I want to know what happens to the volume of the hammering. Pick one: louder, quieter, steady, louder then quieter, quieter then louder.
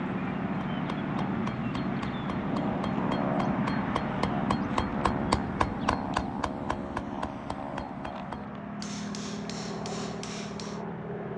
louder then quieter.